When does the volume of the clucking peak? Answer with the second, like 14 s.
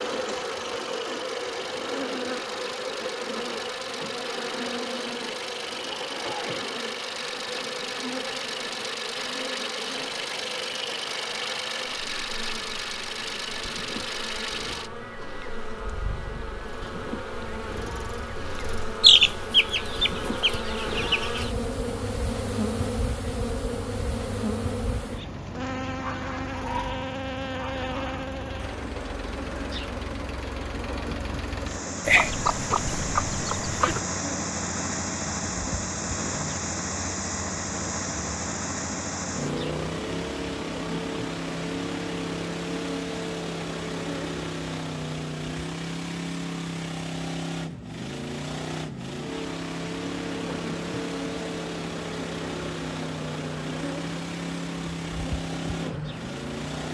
19 s.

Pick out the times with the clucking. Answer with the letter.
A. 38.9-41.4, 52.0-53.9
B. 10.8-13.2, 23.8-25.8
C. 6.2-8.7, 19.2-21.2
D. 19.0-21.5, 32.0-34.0
D.